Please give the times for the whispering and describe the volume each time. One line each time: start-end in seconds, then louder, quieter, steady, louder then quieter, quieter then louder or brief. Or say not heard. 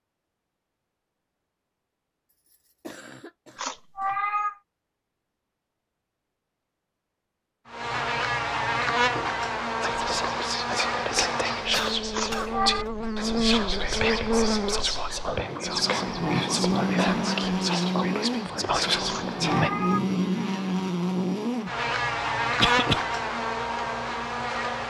9.8-19.7 steady.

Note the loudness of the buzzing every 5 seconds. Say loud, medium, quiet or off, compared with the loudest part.
off, loud, loud, loud, loud.